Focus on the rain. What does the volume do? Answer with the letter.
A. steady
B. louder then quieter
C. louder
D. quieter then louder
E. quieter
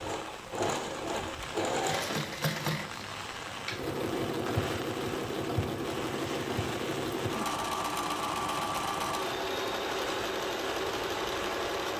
A.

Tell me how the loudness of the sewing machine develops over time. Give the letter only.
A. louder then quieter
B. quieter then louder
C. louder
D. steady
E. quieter
D.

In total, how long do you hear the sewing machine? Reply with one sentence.
The sewing machine can be heard for 12 seconds in total.